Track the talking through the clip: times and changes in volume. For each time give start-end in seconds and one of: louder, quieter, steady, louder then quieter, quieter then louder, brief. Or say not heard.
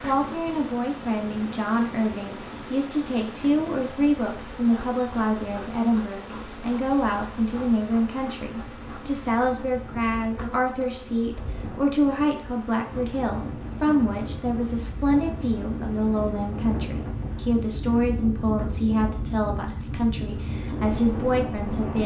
0.0-22.0 steady.